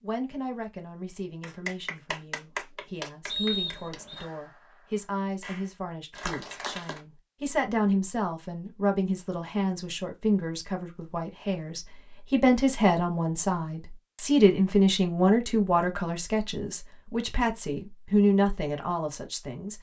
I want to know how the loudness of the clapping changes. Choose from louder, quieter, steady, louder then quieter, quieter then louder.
quieter then louder.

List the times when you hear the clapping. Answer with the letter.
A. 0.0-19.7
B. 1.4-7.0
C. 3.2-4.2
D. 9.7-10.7
B.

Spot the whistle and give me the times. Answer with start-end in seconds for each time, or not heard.
3.2-4.2.